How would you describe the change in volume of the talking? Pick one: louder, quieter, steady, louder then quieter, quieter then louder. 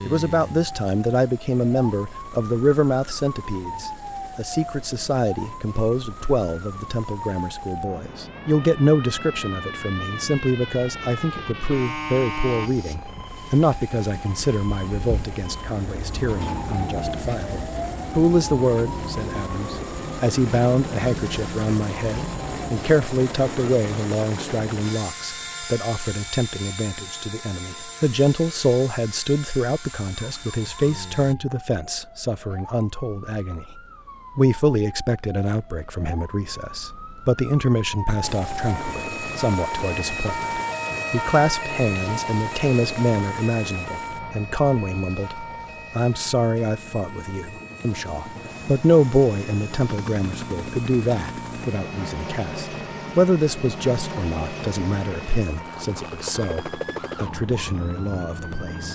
steady.